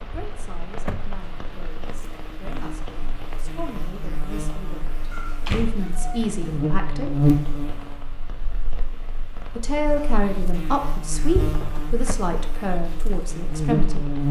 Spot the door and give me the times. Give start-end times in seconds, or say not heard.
0.1-1.2, 5.4-6.0, 11.3-12.2.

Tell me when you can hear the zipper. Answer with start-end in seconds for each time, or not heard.
not heard.